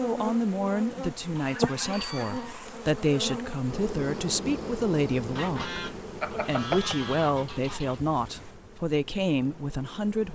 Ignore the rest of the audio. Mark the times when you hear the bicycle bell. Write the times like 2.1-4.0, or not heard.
1.9-2.4, 6.2-7.0.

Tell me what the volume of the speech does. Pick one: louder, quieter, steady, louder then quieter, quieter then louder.
steady.